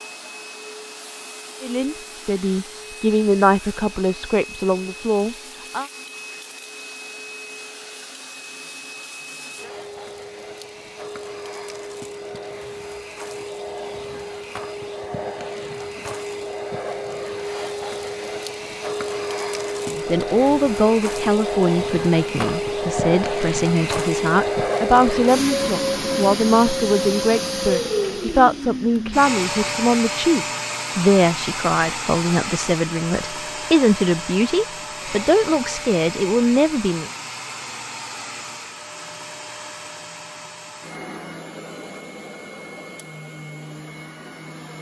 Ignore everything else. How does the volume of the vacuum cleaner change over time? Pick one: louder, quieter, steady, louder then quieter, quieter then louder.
louder then quieter.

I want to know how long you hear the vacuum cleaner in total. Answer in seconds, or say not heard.
45 s.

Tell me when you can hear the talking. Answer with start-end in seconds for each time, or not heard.
1.6-5.8, 19.9-37.1.